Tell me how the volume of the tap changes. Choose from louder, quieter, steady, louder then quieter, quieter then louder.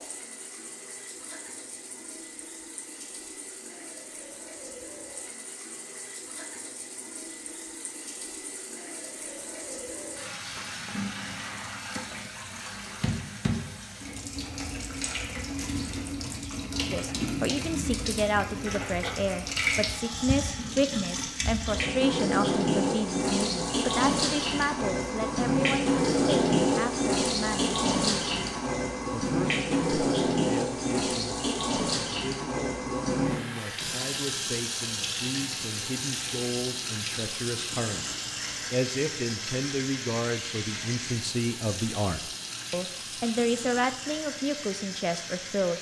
louder then quieter.